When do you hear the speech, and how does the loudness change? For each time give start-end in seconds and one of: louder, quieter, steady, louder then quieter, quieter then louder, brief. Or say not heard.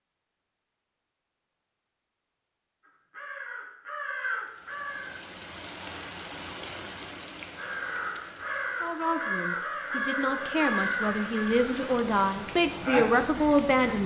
8.8-14.0 louder.